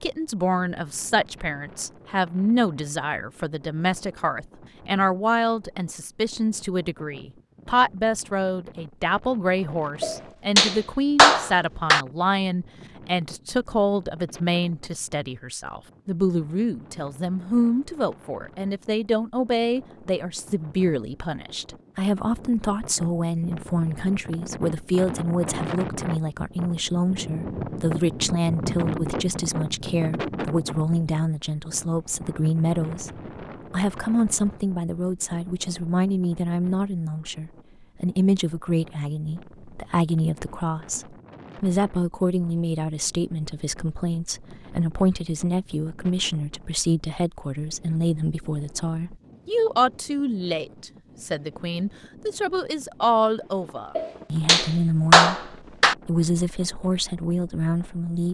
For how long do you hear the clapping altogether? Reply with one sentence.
The clapping can be heard for 4 seconds in total.